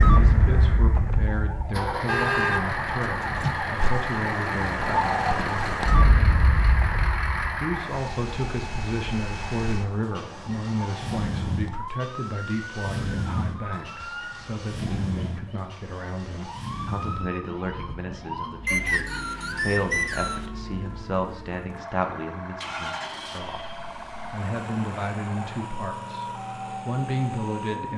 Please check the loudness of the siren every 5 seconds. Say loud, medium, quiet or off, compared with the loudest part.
loud, loud, medium, medium, medium, medium.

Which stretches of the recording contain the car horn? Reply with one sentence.
The car horn can be heard from 2.0 to 3.7 s.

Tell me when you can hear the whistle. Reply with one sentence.
The whistle can be heard from 18.6 to 20.4 s.